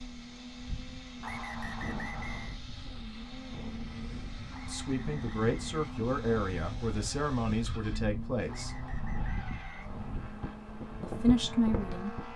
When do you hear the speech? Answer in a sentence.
The speech can be heard from 4.7 to 8.8 s and from 11.0 to 12.2 s.